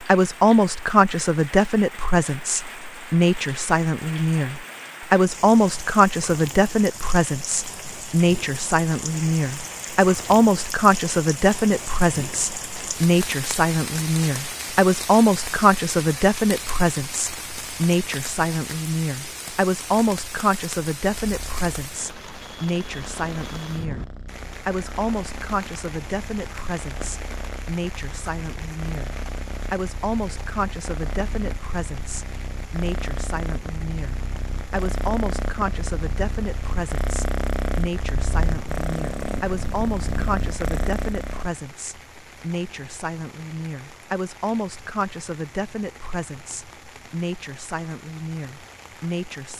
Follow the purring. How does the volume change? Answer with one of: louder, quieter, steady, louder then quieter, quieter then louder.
louder.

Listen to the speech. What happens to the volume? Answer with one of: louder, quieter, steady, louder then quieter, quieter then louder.
quieter.